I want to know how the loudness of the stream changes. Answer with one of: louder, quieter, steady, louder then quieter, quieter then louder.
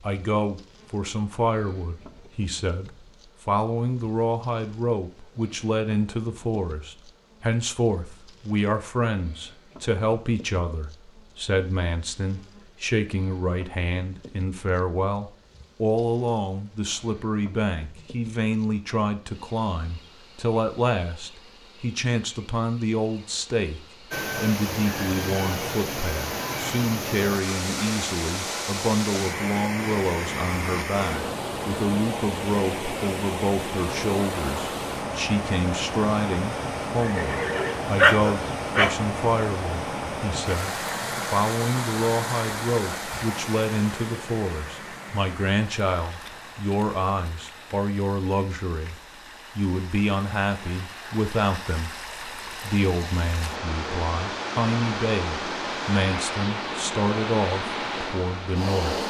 quieter then louder.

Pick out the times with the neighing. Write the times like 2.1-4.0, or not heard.
37.0-37.8.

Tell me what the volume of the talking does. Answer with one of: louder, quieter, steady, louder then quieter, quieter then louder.
steady.